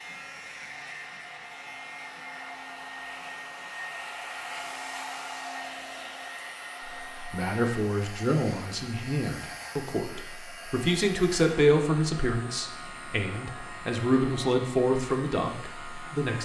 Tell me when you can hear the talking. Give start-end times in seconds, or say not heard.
6.8-16.4.